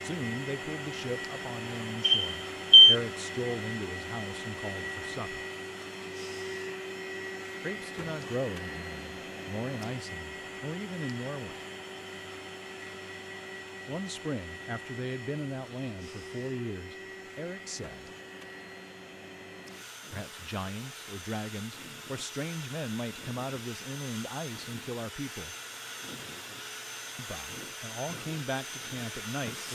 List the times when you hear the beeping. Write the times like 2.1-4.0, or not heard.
2.0-3.0.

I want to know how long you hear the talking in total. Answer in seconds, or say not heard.
22 s.